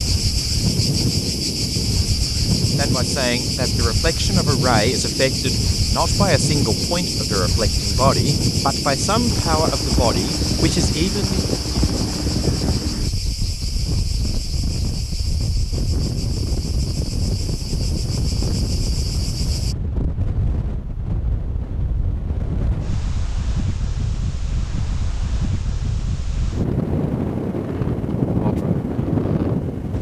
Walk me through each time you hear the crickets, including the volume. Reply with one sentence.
You can hear the crickets from 0.0 to 19.8 s, getting quieter.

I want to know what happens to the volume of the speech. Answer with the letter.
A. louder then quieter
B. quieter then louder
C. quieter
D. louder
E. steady
E.